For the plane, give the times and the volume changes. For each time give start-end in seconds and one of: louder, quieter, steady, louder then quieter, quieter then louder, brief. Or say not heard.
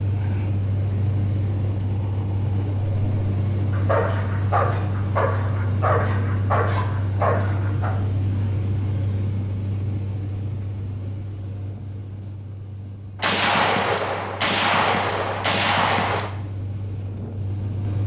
0.0-18.0 quieter.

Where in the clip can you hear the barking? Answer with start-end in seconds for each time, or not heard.
2.6-8.0.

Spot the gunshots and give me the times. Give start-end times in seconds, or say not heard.
13.2-16.4.